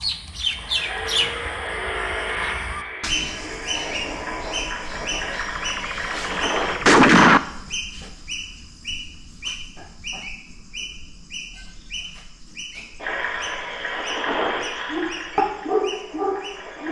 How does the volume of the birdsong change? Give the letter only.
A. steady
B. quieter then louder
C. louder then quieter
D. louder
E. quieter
E.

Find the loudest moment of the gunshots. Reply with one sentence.
The volume of the gunshots peaks at 7 seconds.